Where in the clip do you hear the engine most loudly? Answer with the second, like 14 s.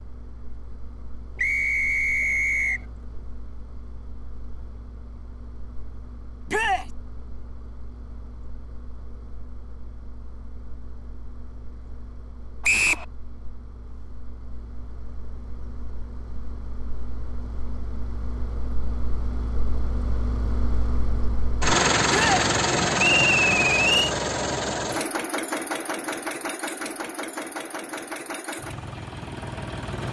22 s.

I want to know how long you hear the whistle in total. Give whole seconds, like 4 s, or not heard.
3 s.